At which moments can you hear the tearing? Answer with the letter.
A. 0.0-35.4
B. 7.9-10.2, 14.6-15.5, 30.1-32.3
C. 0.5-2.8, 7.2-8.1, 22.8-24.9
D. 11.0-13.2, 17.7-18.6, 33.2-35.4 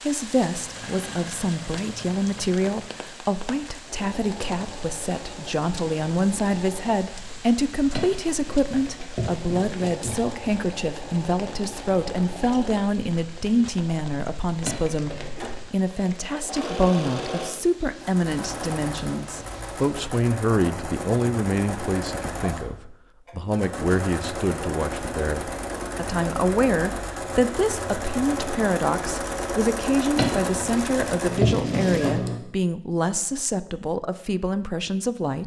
B.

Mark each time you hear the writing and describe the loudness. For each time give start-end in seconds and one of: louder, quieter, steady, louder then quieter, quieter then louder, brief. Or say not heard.
not heard.